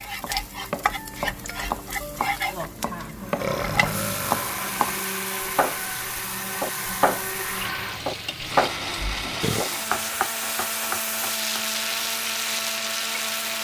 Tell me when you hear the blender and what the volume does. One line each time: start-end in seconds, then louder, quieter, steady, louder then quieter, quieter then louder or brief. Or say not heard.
3.1-13.5 steady.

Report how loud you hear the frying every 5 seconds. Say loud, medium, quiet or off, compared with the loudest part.
loud, medium, loud.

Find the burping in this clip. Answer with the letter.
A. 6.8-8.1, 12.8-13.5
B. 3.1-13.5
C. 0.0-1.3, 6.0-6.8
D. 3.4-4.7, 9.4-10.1
D.